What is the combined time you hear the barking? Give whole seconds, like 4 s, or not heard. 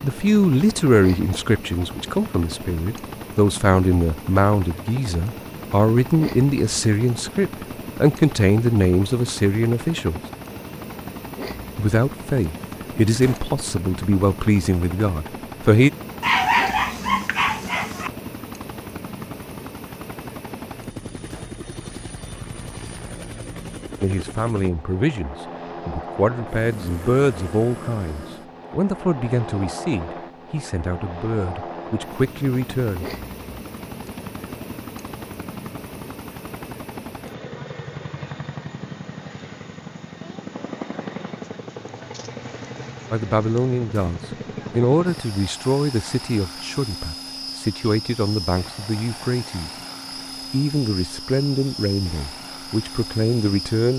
2 s.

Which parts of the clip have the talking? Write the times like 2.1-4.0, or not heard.
0.0-10.2, 11.8-15.9, 24.0-33.1, 43.1-49.8, 50.5-53.9.